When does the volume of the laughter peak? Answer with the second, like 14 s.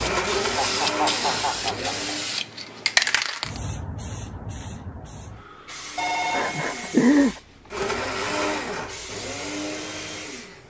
7 s.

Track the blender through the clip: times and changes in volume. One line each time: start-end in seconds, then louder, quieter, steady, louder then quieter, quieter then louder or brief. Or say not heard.
0.0-2.3 brief
5.8-10.6 louder then quieter.